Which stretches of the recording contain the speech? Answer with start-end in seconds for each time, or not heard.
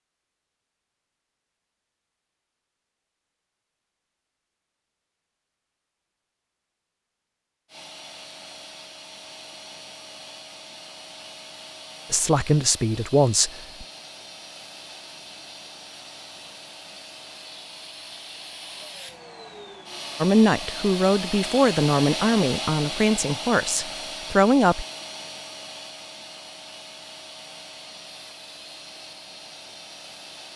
12.1-13.8, 20.2-24.9.